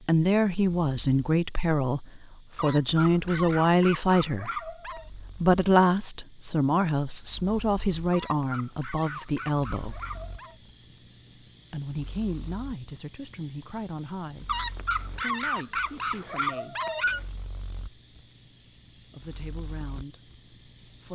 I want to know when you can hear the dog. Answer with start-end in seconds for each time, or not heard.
2.5-5.1, 8.1-10.6, 14.4-17.2.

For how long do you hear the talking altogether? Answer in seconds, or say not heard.
17 s.